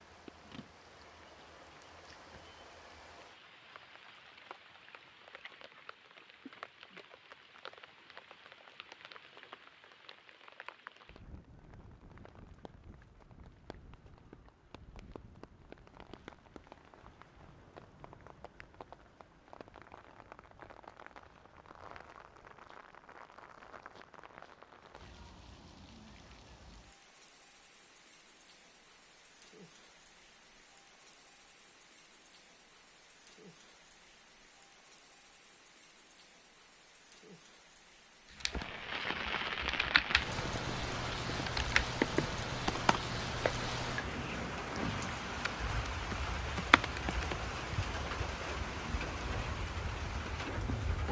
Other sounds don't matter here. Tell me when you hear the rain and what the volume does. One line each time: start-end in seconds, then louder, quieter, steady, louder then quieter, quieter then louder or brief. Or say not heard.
0.0-51.0 louder.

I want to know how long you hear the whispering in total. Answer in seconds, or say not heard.
not heard.